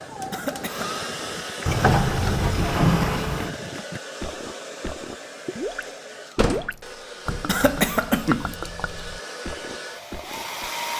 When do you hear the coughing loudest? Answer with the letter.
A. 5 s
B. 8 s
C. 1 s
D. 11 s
B.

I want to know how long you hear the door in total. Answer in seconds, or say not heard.
3 s.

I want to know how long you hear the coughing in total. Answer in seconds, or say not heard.
2 s.